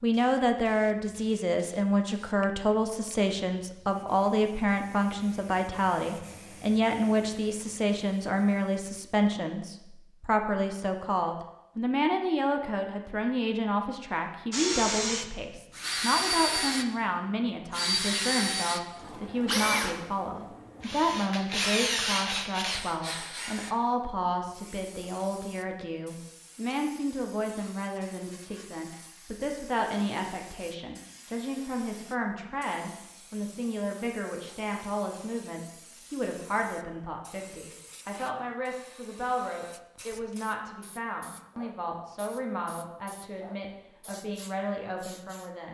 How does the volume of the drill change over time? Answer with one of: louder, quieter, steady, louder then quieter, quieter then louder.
quieter then louder.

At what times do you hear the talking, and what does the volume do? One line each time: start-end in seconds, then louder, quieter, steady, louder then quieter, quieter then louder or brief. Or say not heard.
0.0-45.7 quieter.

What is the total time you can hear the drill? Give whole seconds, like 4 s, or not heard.
9 s.